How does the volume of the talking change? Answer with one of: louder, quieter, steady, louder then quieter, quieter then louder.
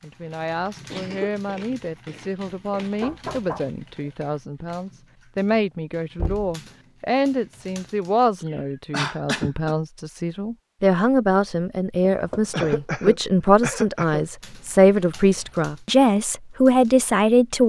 louder.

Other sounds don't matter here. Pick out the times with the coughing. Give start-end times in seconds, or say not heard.
0.9-2.9, 8.4-9.8, 12.5-14.2.